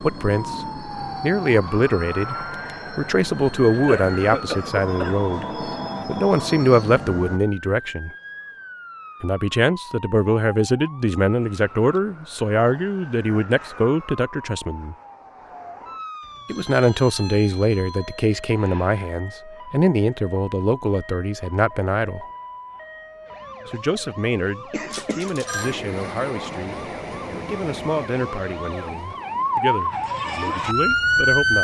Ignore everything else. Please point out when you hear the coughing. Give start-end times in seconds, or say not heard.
3.9-5.2, 24.7-25.3.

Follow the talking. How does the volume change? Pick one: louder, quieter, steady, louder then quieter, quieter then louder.
quieter.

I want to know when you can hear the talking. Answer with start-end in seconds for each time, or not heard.
0.0-8.1, 9.2-14.9, 16.4-22.2, 23.6-31.5.